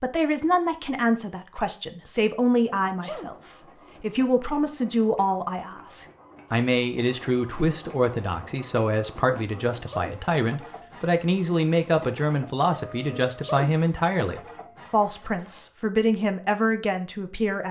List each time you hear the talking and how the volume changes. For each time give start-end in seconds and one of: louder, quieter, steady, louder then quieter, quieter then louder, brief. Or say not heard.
0.0-17.6 steady.